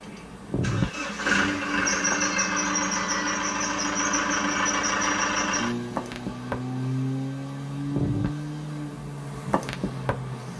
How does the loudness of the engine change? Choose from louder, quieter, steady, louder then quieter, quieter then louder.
quieter.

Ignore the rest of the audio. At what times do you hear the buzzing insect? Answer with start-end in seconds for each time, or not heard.
0.0-2.3, 5.8-10.5.